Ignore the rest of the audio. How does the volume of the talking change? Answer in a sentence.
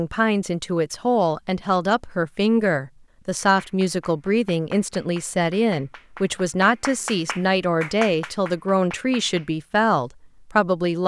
The volume of the talking stays about the same.